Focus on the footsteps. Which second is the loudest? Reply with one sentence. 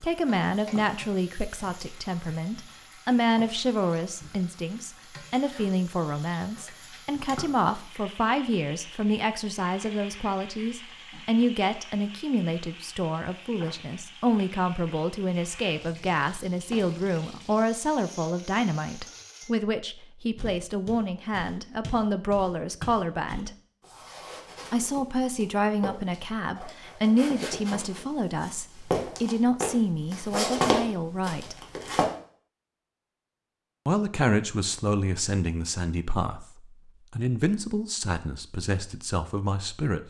The volume of the footsteps peaks at 31 seconds.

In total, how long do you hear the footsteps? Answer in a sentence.
The footsteps can be heard for 12 seconds in total.